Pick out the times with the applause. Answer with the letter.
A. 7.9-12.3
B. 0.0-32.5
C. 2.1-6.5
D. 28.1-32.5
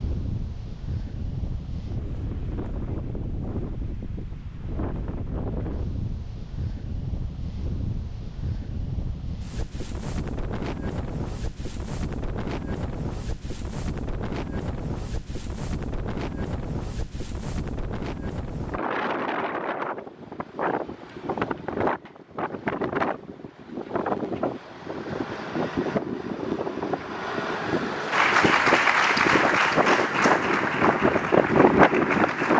D.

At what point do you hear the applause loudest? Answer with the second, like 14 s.
29 s.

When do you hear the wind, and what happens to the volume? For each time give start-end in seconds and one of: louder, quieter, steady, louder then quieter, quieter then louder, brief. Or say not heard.
0.0-32.5 louder.